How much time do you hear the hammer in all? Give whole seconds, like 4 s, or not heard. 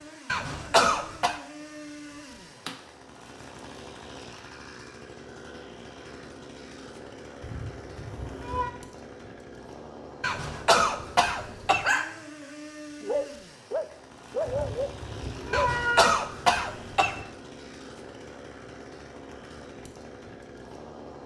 not heard.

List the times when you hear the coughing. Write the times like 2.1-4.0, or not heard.
0.2-1.4, 10.2-11.9, 15.5-17.2.